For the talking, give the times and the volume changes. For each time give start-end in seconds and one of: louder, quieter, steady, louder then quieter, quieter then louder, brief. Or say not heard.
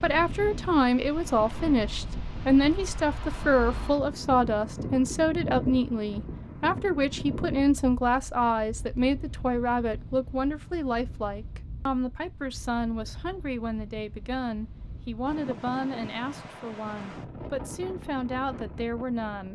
0.0-19.5 quieter.